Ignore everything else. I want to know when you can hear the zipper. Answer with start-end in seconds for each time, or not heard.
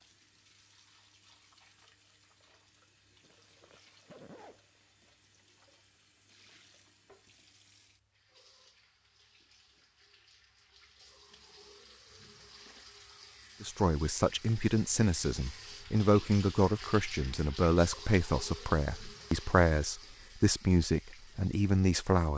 3.2-4.8.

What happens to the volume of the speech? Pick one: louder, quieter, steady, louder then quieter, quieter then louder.
steady.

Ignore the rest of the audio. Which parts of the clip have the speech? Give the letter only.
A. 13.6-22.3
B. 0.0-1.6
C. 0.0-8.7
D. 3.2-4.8
A.